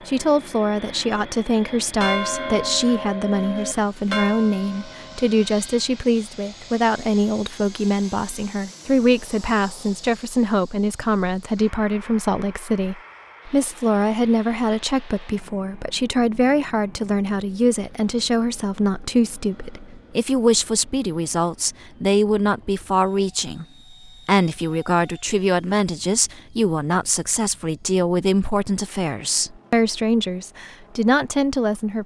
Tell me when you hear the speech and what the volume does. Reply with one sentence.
The speech can be heard from 0.1 to 23.6 s, at a steady volume; and from 24.2 to 32.0 s, at a steady volume.